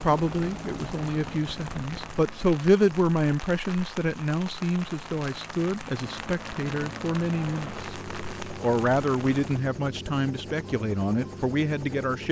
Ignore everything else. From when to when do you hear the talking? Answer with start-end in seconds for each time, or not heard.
0.0-7.8, 8.6-12.2.